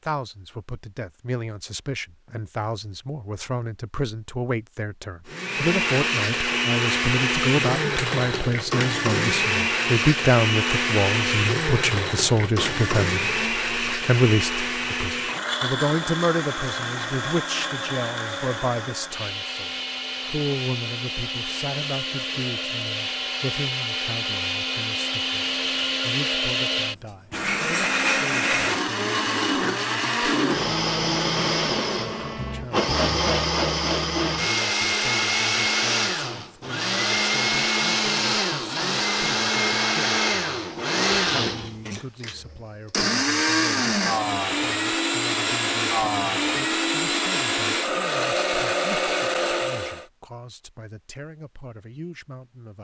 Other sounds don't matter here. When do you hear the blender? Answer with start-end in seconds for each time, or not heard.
5.2-50.0.